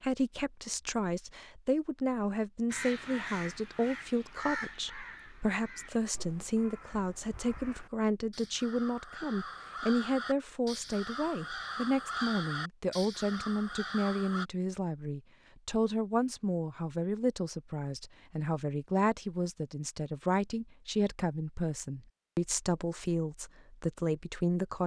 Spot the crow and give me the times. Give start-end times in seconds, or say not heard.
2.7-14.4.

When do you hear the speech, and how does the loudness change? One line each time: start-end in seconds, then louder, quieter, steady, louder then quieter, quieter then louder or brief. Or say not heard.
0.0-24.8 steady.